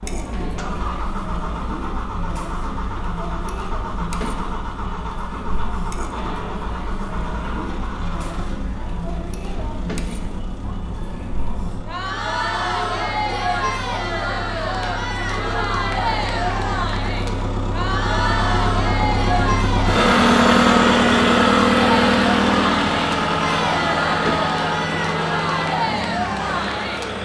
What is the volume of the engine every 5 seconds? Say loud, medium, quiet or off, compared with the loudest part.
quiet, quiet, quiet, medium, loud, medium.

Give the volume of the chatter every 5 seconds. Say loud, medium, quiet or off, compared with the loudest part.
medium, medium, loud, loud, loud, loud.